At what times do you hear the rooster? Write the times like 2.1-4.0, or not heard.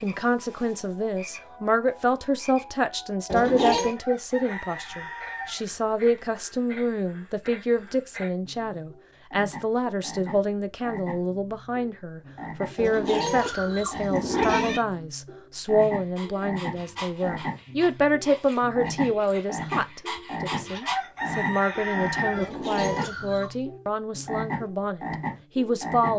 4.0-5.7, 20.8-22.5.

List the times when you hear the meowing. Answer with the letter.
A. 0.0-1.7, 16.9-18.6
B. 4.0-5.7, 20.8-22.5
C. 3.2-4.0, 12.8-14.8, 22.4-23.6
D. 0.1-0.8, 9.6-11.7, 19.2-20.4
C.